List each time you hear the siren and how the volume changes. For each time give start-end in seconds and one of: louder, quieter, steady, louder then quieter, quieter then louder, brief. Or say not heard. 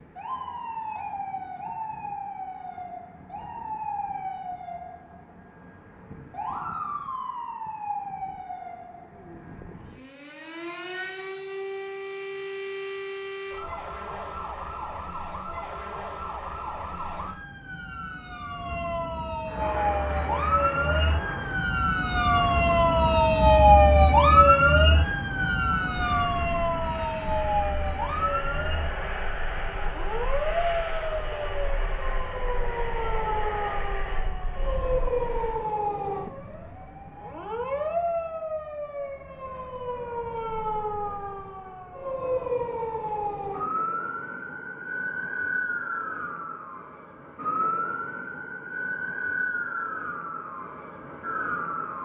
0.0-52.0 louder then quieter.